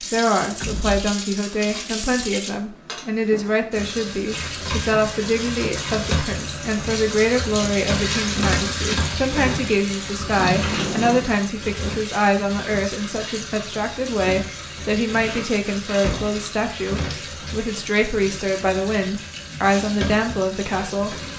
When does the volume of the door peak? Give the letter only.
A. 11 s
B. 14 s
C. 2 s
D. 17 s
A.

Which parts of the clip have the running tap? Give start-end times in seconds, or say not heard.
0.0-21.3.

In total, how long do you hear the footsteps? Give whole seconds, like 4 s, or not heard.
not heard.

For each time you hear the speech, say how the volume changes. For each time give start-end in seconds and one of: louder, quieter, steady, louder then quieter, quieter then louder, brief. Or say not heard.
0.0-21.1 steady.